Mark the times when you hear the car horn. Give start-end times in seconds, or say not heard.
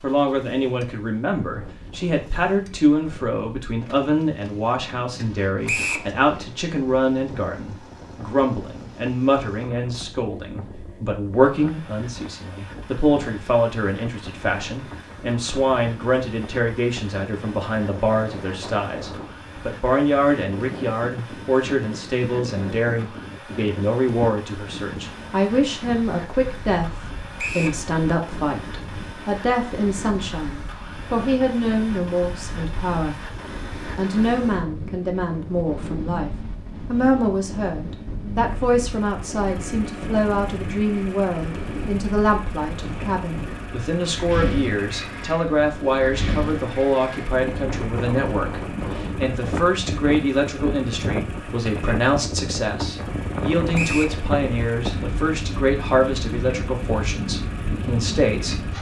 not heard.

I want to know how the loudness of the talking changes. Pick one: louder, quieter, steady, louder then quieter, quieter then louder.
steady.